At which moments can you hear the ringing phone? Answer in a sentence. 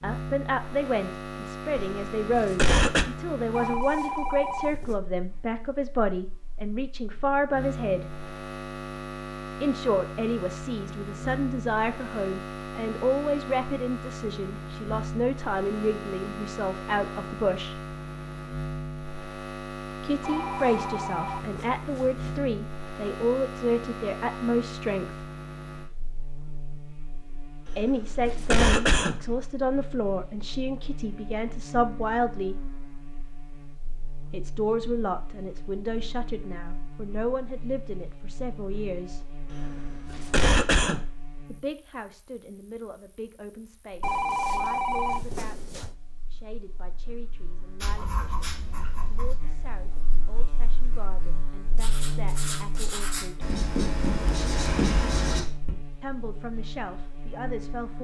You can hear the ringing phone from 3.5 to 5.0 s, from 20.2 to 22.2 s and from 44.0 to 45.9 s.